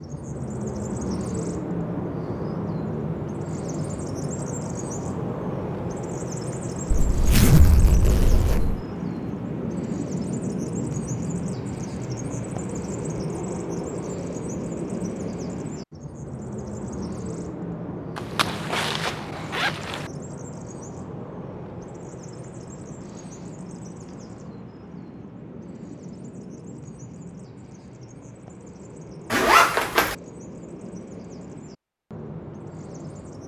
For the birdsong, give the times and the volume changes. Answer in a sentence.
You can hear the birdsong from 0.0 to 33.4 s, getting quieter.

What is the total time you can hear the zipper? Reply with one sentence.
You can hear the zipper for 5 seconds altogether.